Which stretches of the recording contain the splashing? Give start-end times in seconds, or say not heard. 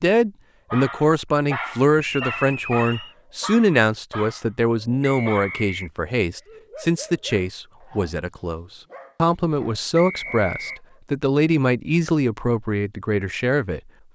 not heard.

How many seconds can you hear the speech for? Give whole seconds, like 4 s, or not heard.
14 s.